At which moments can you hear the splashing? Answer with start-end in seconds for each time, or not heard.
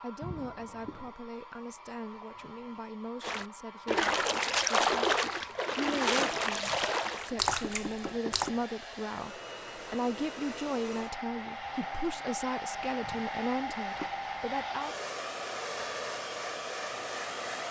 3.2-8.5.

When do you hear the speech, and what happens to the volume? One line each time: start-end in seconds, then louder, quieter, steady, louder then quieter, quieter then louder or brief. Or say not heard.
0.0-14.9 louder.